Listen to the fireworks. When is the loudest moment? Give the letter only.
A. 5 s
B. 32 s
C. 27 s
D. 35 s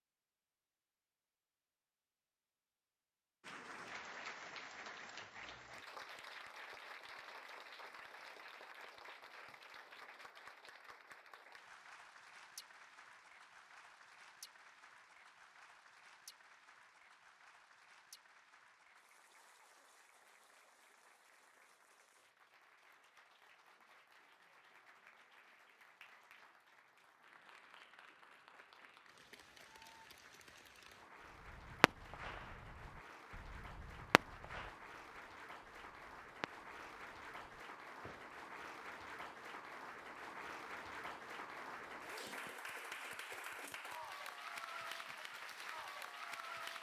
B.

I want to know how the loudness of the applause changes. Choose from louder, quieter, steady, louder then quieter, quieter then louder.
quieter then louder.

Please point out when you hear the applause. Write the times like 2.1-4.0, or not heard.
3.4-46.7.